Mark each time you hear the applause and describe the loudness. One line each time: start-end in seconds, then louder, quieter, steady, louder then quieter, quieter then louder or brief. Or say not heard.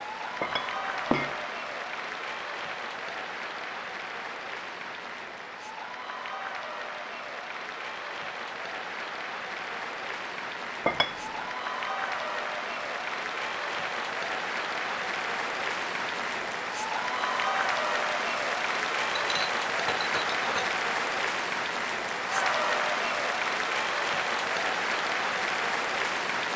0.0-26.5 louder.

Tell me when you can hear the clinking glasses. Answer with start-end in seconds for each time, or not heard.
0.4-1.4, 10.8-11.4, 19.1-20.8.